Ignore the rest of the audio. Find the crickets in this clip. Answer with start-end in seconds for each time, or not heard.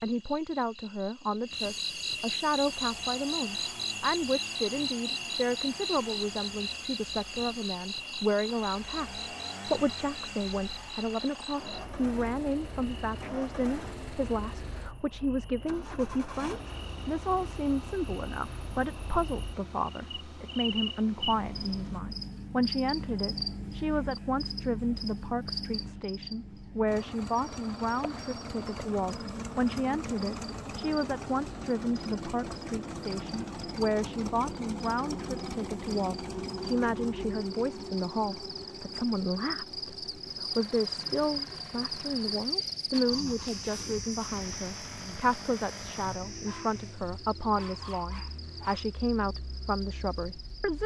0.0-50.8.